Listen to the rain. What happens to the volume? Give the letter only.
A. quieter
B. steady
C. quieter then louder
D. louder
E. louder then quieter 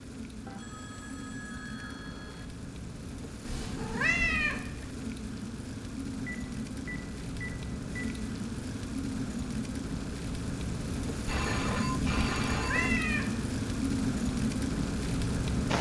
D.